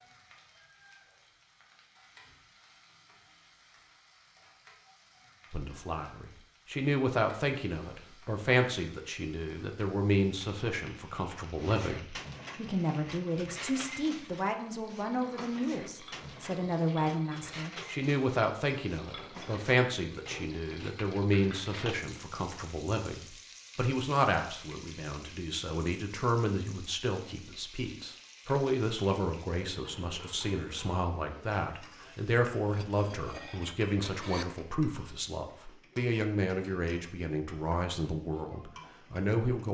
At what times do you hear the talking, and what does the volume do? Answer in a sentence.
You can hear the talking from 5.5 to 39.7 s, at a steady volume.